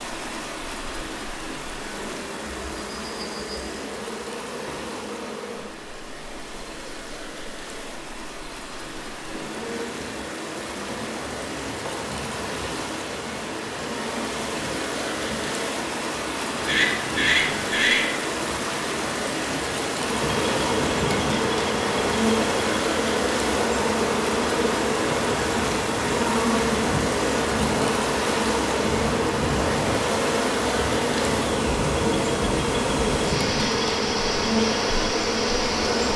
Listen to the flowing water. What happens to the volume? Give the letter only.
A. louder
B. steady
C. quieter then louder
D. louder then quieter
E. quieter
A.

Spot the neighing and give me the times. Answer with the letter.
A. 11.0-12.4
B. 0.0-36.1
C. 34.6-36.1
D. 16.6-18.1
D.